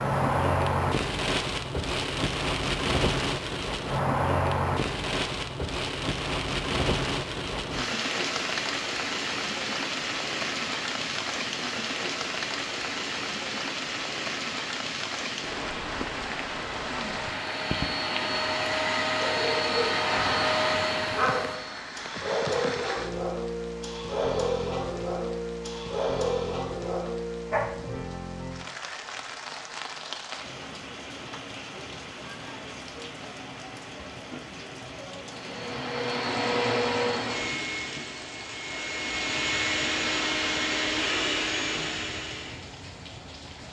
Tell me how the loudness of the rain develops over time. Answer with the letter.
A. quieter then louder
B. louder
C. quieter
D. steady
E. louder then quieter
C.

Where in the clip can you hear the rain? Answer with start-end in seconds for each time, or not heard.
0.0-43.6.